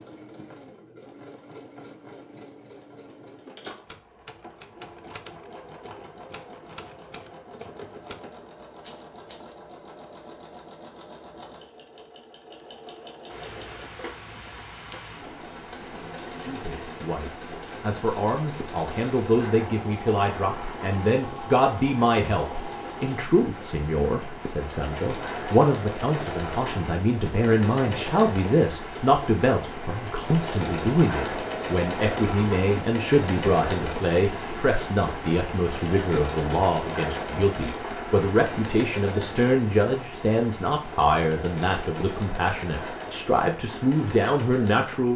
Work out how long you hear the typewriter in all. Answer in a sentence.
You can hear the typewriter for 6 seconds altogether.